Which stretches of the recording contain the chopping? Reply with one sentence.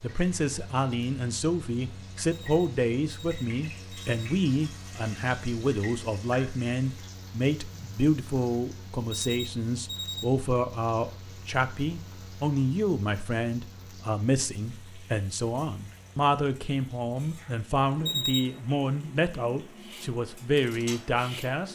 You can't hear the chopping here.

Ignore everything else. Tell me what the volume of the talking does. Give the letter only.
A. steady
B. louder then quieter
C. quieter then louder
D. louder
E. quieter
A.